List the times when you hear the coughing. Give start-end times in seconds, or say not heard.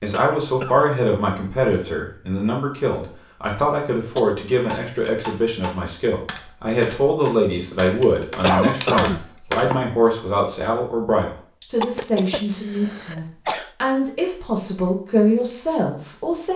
0.1-0.8, 8.4-9.2, 11.8-13.7.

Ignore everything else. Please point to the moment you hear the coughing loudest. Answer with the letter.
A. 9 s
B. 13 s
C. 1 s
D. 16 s
A.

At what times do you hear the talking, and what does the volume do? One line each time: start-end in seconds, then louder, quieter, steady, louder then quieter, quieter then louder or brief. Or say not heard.
0.0-16.5 steady.